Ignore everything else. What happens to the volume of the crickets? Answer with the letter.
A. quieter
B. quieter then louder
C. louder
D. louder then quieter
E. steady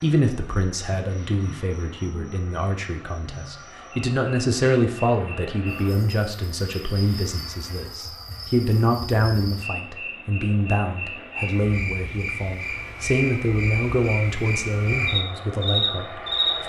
C.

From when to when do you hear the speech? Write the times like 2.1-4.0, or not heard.
0.0-16.6.